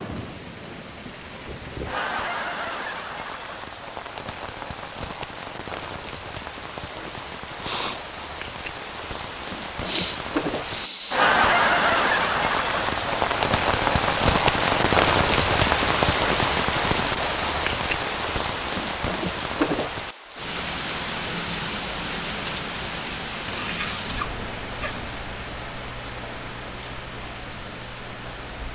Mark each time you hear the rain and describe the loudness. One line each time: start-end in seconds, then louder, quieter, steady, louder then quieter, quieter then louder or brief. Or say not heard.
0.0-28.7 louder then quieter.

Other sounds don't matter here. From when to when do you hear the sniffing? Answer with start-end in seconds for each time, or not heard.
6.9-8.0, 9.8-11.3, 23.4-25.1.